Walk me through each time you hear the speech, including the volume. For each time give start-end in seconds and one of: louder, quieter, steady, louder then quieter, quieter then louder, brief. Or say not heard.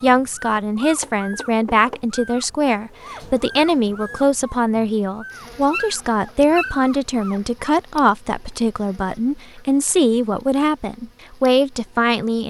0.0-12.4 steady.